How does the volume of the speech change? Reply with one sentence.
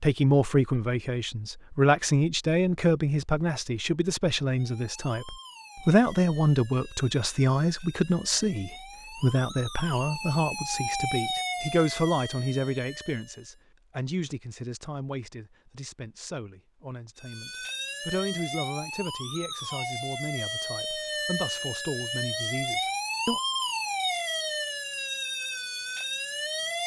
The volume of the speech goes down.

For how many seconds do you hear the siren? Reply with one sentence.
The siren can be heard for 19 seconds in total.